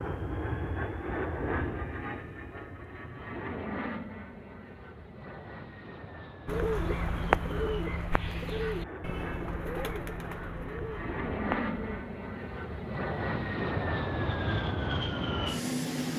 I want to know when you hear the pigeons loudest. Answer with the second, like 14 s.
7 s.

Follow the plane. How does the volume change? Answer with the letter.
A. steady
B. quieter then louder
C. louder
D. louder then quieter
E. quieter
B.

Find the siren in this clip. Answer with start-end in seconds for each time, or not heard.
not heard.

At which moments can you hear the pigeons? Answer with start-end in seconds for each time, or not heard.
6.5-12.1.